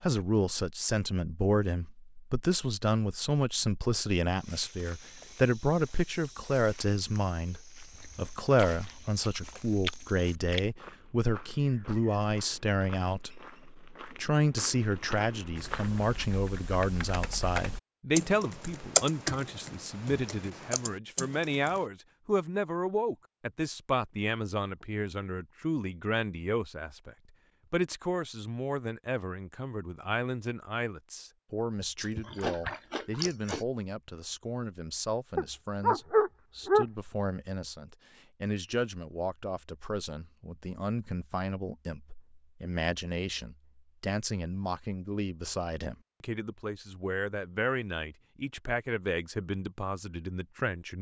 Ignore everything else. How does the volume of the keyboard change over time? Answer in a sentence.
The loudness of the keyboard goes up, then down.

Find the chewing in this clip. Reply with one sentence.
The chewing can be heard from 7.9 to 10.7 s and from 31.9 to 33.6 s.